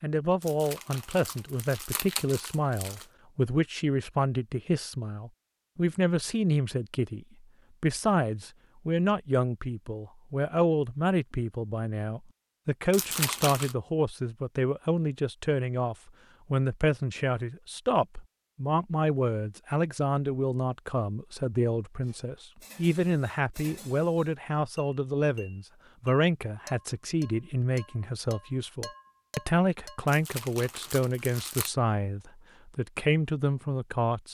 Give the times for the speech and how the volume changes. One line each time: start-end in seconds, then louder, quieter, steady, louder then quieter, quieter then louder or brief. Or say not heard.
0.0-34.3 steady.